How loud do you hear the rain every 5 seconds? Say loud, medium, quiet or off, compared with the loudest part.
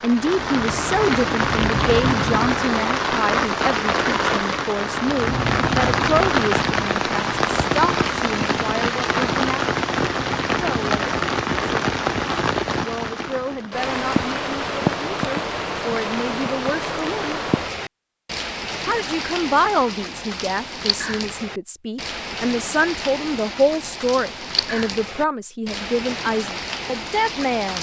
loud, loud, loud, medium, medium, medium.